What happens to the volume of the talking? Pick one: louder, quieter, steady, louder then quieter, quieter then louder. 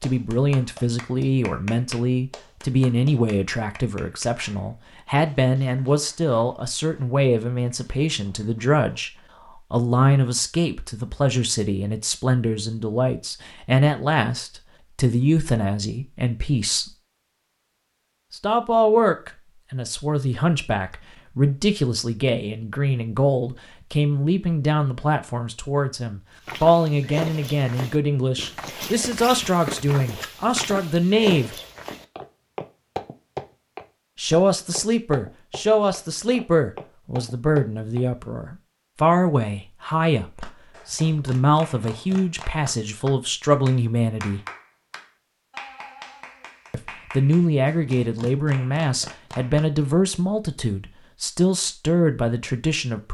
steady.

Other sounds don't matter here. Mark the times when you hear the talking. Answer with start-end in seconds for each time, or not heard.
0.0-16.9, 18.3-31.6, 34.1-44.4, 46.7-53.0.